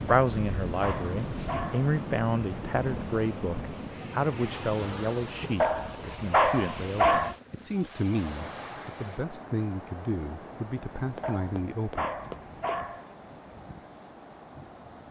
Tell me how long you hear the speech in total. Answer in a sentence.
You can hear the speech for 12 seconds altogether.